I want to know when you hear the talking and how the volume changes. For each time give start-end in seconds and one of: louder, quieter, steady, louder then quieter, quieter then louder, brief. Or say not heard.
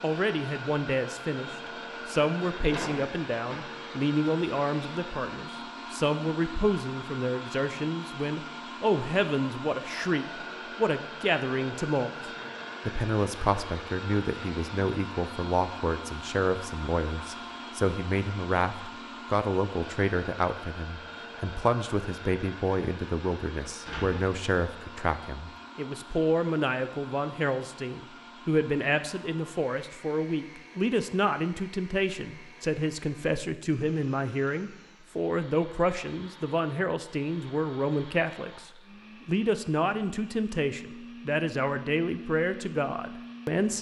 0.0-43.7 steady.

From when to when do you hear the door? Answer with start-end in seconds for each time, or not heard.
2.7-3.6, 23.9-24.4.